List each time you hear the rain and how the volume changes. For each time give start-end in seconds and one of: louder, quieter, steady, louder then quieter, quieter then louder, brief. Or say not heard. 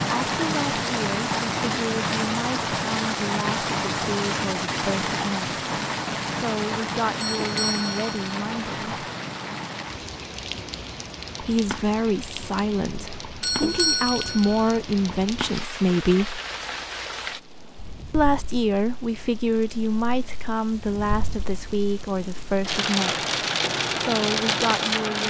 0.0-25.2 quieter then louder.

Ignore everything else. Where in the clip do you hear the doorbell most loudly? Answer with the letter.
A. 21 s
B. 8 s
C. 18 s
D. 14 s
D.